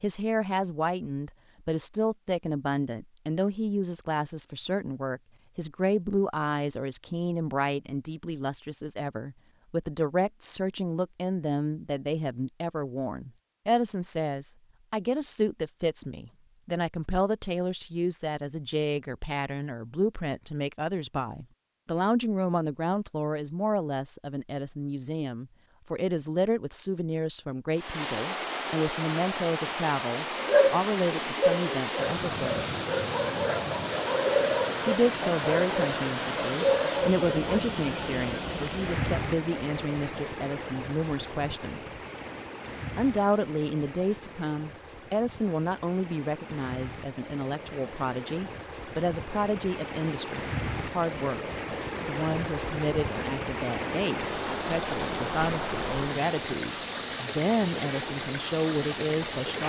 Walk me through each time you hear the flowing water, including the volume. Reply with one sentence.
You can hear the flowing water from 27.8 to 59.6 s, getting quieter then louder.